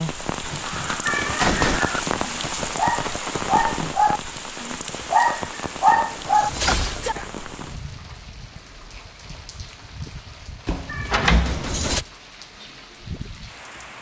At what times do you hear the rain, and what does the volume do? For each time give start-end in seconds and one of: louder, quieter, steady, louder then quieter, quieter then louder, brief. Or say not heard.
0.0-13.9 quieter.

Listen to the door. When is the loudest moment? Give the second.
11 s.